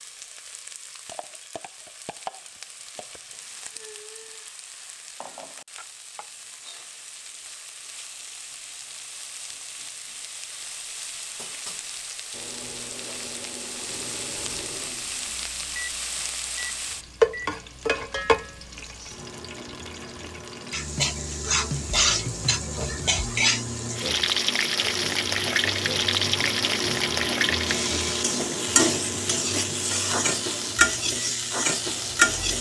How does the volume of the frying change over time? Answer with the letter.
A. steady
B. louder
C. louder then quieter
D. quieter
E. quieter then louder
B.